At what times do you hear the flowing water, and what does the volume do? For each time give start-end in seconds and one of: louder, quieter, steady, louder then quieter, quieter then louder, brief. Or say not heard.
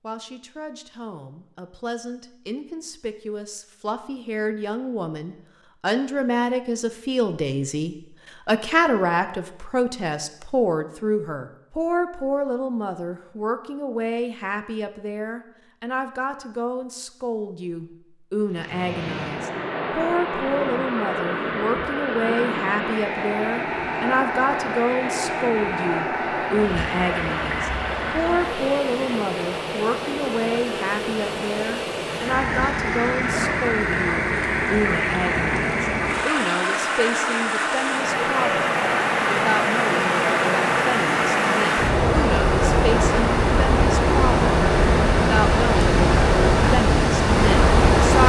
18.4-48.2 louder.